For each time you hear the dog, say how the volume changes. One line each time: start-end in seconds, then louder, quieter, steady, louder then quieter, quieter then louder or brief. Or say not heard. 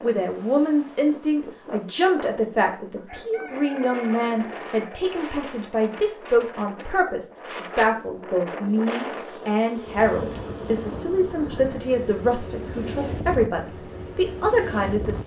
not heard.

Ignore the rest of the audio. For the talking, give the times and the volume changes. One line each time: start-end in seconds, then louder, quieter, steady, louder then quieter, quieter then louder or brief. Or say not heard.
0.0-15.2 steady.